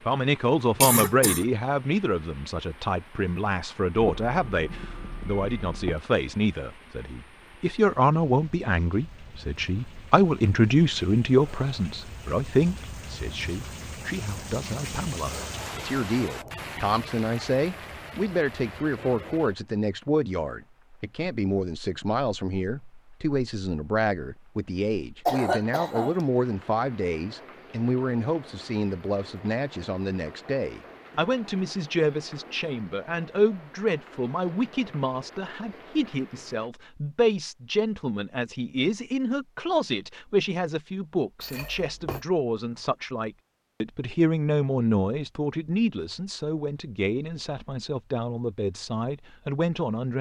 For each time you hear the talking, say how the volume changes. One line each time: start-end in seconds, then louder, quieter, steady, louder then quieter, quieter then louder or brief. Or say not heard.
0.0-50.1 steady.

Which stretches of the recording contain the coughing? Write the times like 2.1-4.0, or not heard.
0.8-1.4, 25.2-26.2, 41.4-42.2.